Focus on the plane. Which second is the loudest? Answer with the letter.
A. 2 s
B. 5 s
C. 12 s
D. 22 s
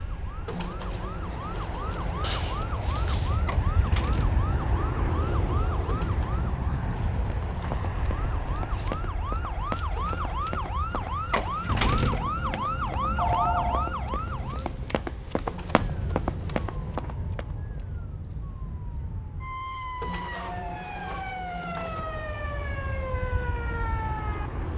B.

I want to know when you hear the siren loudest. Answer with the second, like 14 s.
12 s.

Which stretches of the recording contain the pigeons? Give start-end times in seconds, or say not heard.
0.5-2.3, 5.8-7.9, 9.9-11.9, 15.4-17.0, 20.0-22.1.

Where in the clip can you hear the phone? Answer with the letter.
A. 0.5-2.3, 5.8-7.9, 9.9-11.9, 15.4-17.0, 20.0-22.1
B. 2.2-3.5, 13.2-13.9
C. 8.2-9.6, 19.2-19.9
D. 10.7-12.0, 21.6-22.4
B.